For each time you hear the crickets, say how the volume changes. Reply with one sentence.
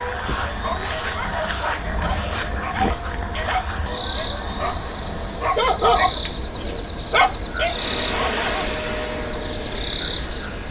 You can hear the crickets from 0.0 to 10.6 s, at a steady volume.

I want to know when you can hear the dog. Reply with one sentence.
The dog can be heard from 0.5 to 8.7 s.